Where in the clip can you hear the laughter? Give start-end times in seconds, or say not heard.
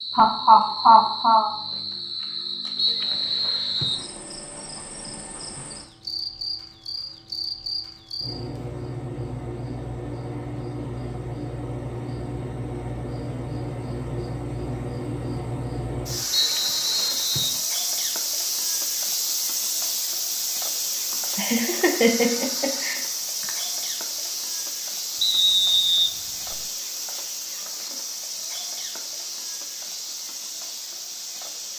0.1-1.5, 21.1-23.5.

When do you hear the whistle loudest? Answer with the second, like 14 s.
26 s.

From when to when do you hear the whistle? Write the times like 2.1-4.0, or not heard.
2.8-4.0, 16.3-17.6, 25.2-26.6.